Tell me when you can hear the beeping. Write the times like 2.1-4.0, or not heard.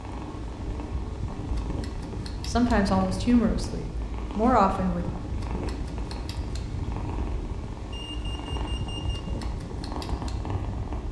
7.9-9.2.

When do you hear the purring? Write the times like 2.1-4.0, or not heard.
0.0-11.0.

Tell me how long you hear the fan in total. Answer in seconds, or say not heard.
11 s.